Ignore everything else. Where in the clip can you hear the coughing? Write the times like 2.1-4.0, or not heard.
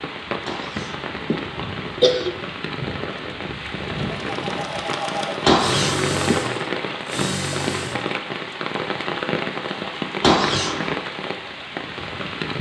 0.5-2.4, 5.4-6.2, 10.2-10.9.